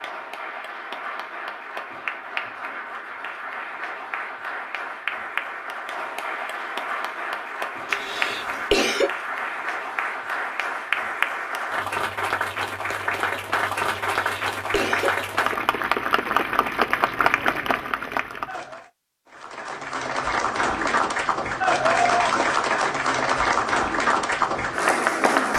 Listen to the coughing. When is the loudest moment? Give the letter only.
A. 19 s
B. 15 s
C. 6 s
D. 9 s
D.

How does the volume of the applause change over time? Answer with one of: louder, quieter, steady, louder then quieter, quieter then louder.
louder.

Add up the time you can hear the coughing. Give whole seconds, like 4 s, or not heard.
2 s.